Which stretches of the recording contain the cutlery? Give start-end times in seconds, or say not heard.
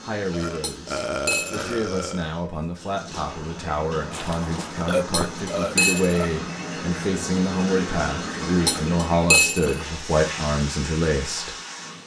0.6-1.6, 5.1-6.3, 8.7-9.8.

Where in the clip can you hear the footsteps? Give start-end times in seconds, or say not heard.
4.1-5.3.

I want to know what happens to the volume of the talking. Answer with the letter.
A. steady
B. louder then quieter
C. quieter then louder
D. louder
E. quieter
D.